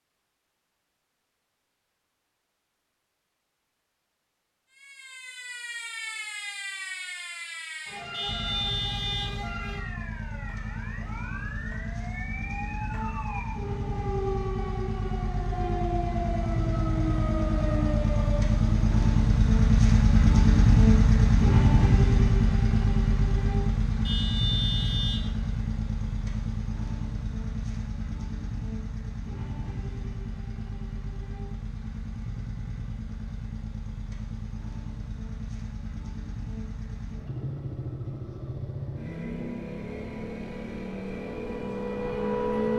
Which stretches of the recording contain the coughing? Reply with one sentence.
The coughing can't be heard in this clip.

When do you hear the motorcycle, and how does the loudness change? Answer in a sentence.
The motorcycle can be heard from 8.2 to 42.7 s, getting louder then quieter.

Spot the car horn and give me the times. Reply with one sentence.
You can hear the car horn from 8.1 to 9.4 s and from 24.1 to 25.3 s.